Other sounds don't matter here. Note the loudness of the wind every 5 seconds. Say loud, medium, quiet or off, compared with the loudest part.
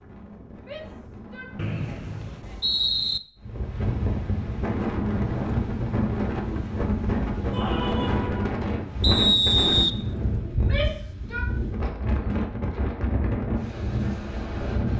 medium, loud, loud.